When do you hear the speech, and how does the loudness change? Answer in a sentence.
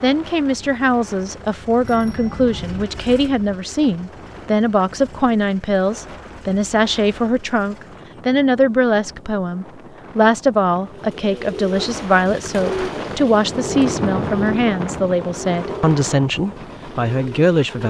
The speech can be heard from 0.0 to 17.8 s, at a steady volume.